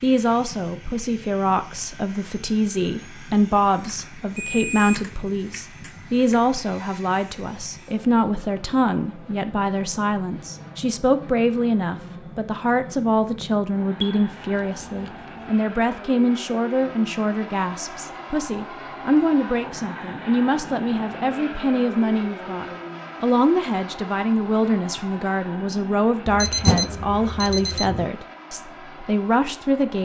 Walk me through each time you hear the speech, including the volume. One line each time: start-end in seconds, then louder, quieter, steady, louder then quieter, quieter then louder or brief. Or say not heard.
0.0-30.0 steady.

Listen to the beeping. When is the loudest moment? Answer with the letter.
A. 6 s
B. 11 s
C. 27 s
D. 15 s
C.